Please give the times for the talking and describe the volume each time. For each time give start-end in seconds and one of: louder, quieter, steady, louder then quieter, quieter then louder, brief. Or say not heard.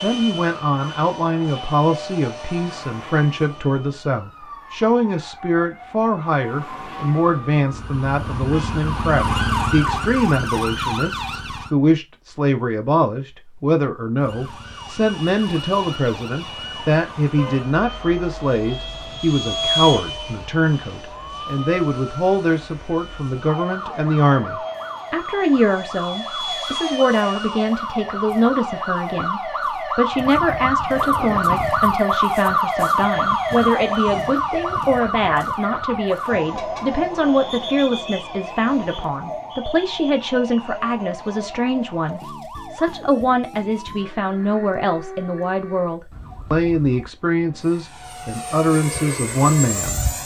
0.0-50.0 steady.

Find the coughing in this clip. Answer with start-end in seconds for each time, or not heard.
not heard.